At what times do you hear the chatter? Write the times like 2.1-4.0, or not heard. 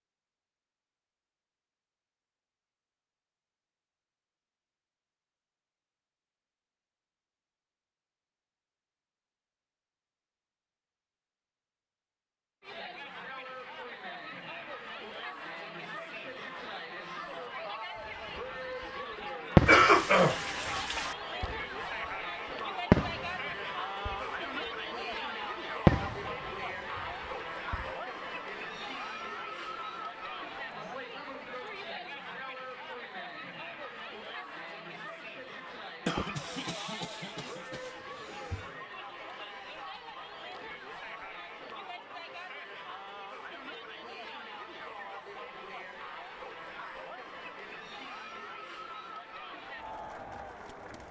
12.6-51.0.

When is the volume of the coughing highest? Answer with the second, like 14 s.
20 s.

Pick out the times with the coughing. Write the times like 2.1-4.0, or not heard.
19.6-21.1, 36.0-38.7.